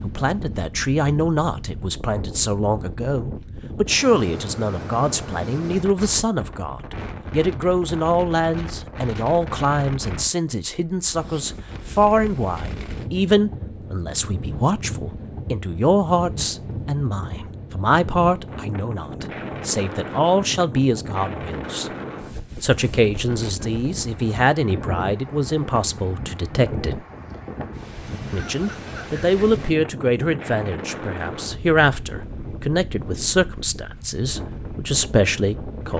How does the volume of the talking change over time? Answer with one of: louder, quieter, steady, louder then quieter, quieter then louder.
steady.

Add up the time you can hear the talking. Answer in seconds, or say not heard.
34 s.